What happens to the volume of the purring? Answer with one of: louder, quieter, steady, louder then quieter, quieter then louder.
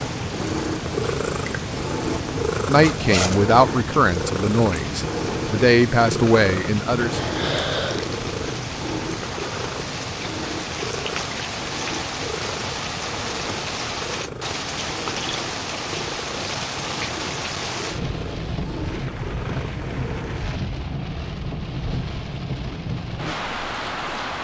quieter.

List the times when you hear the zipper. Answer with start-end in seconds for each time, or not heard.
2.8-3.5.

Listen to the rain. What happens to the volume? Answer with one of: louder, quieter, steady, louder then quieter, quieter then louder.
louder.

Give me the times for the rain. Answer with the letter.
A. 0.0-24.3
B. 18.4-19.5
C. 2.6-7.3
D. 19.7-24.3
A.